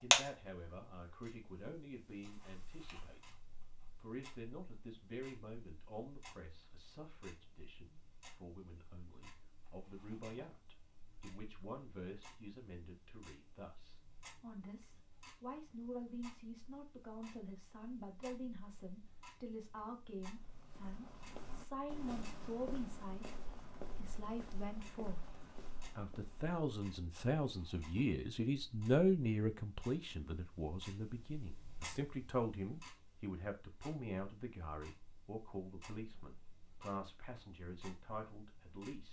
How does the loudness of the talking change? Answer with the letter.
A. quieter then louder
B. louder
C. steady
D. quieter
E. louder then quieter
E.